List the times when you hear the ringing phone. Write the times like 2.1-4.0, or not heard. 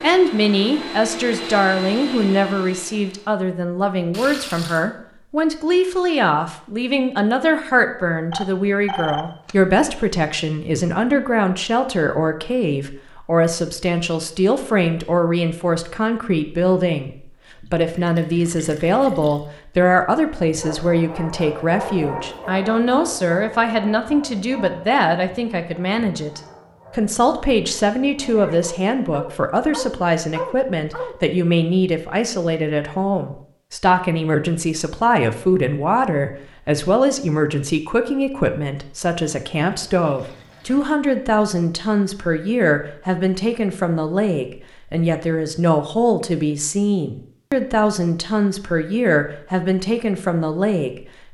8.3-9.6.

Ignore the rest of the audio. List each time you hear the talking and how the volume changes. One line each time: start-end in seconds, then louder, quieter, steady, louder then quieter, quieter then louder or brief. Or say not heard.
0.0-51.0 steady.